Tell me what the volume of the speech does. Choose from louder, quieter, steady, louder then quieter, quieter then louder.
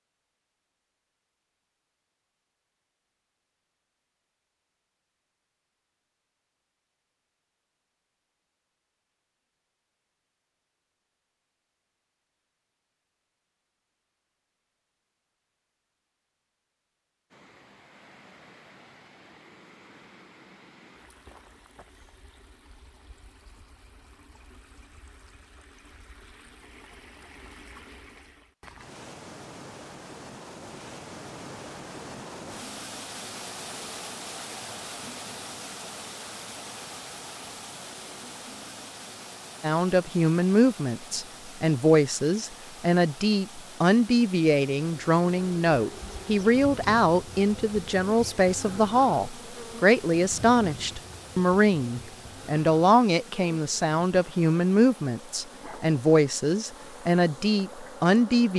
steady.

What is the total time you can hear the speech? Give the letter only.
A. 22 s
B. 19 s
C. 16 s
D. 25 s
B.